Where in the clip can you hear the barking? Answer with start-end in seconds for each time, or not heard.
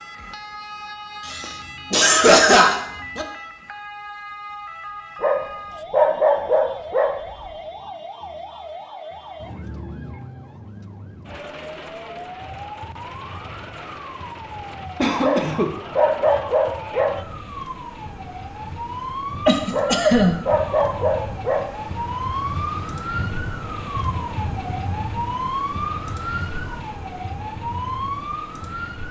5.2-7.4, 15.2-17.2, 19.7-21.9.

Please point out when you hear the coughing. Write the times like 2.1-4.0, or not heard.
1.2-3.2, 15.0-15.7, 19.4-20.4.